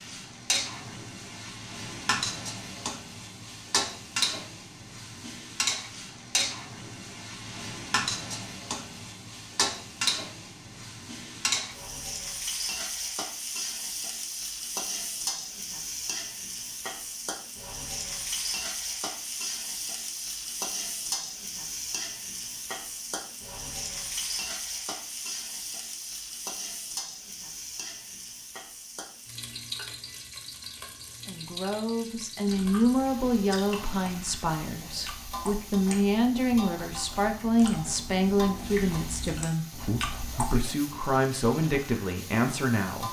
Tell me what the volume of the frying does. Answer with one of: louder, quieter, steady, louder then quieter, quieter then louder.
quieter.